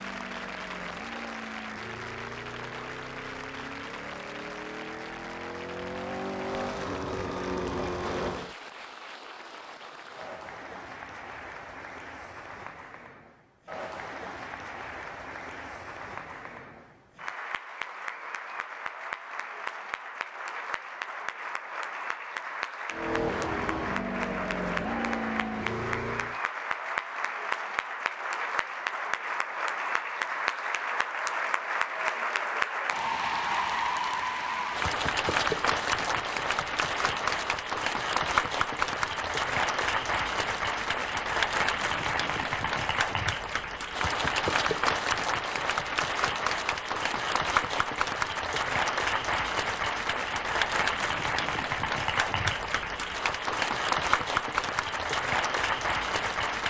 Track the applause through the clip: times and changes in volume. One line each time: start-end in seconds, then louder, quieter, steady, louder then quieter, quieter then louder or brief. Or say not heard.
0.0-56.6 louder.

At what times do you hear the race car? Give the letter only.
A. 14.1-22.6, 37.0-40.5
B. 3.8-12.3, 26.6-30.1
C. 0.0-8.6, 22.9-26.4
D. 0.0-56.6
C.